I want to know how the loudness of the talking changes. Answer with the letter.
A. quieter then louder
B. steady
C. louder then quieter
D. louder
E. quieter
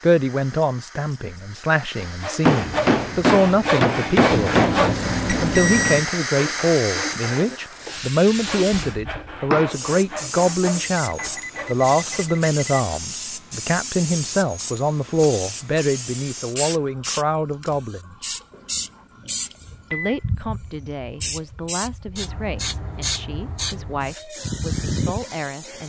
E.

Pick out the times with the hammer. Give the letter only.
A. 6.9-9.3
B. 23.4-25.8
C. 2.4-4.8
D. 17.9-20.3
C.